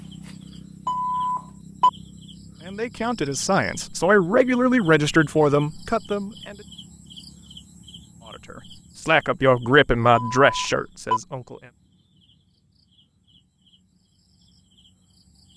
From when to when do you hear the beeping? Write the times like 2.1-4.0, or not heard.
0.8-1.9, 10.1-11.2.